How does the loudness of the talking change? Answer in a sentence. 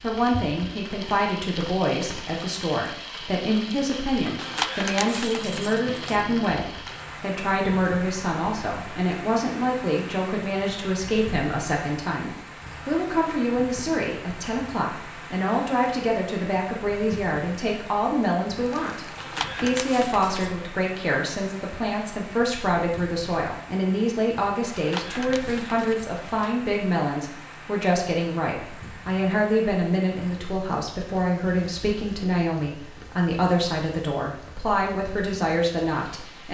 The volume of the talking stays about the same.